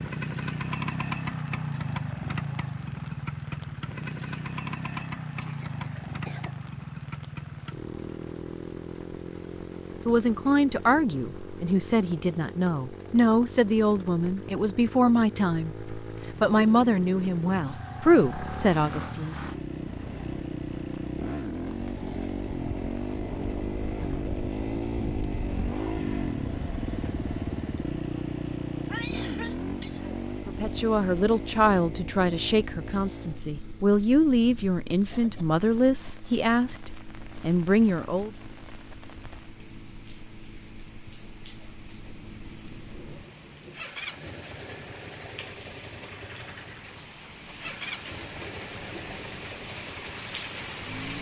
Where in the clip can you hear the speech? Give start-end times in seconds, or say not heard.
10.1-19.4, 30.4-38.3.